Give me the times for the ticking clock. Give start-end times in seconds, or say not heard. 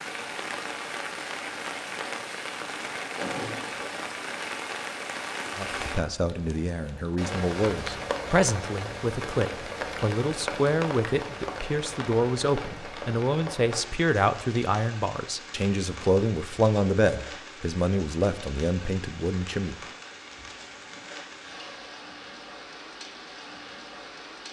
not heard.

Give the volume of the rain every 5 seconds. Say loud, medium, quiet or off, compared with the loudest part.
loud, loud, loud, medium, medium.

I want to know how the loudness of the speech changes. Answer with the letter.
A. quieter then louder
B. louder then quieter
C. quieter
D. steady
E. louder
D.